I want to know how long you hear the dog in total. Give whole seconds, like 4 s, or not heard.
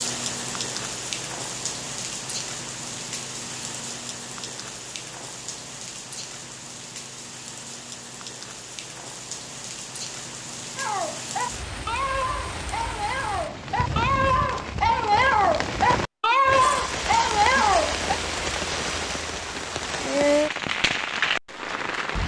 7 s.